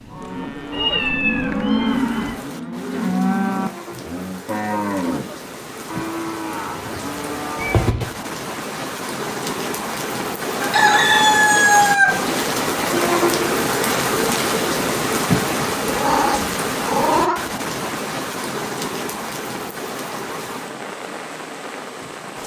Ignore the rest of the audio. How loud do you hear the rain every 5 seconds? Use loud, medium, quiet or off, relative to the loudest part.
quiet, medium, loud, loud, medium.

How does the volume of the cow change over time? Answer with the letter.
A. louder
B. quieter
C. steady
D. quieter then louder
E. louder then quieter
B.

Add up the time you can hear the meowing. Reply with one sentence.
You can hear the meowing for 4 seconds altogether.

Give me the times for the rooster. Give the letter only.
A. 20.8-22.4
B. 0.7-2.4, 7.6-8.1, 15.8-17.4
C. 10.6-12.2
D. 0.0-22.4
C.